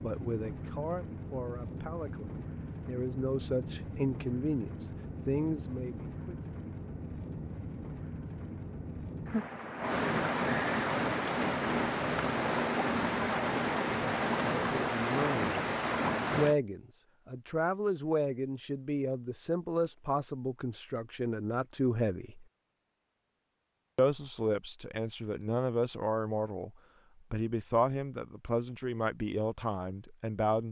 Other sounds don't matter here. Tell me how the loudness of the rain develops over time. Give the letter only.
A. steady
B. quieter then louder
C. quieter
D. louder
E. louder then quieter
D.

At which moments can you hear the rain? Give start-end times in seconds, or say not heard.
0.0-16.6.